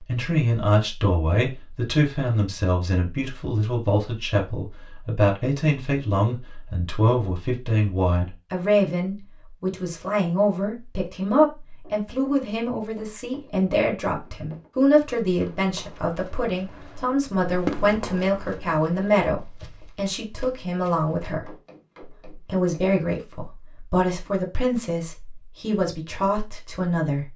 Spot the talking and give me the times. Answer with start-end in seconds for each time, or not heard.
0.0-21.5, 22.4-27.3.